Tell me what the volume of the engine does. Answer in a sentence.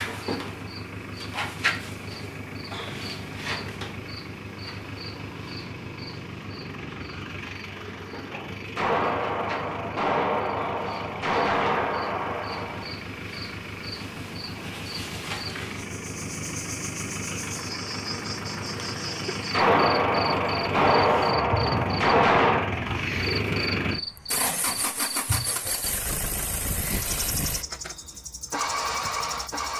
The volume of the engine goes up.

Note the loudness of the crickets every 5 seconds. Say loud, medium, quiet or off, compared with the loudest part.
loud, medium, medium, loud, loud, loud.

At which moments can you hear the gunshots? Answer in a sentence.
The gunshots can be heard from 8.8 to 12.9 s and from 19.5 to 22.8 s.